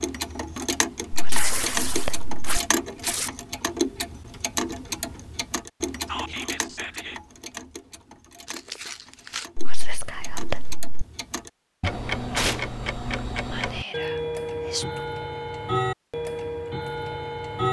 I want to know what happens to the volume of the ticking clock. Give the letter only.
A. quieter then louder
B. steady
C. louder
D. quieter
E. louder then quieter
A.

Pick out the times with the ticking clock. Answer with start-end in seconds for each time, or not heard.
0.0-17.6.